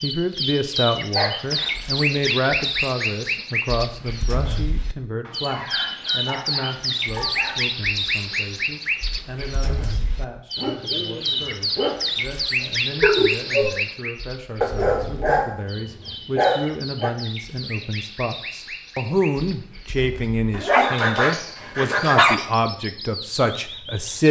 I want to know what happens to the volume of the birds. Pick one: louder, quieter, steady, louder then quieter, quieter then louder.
quieter.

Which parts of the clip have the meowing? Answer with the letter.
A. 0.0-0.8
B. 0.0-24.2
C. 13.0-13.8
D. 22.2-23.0
C.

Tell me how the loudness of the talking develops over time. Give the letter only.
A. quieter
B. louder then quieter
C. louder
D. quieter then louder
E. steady
D.